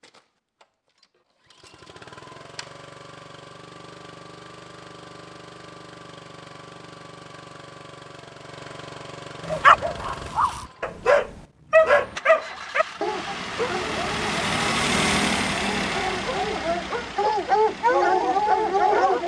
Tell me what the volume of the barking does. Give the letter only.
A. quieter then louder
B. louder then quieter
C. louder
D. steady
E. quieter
A.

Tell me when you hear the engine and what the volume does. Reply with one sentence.
You can hear the engine from 0.0 to 19.2 s, getting louder.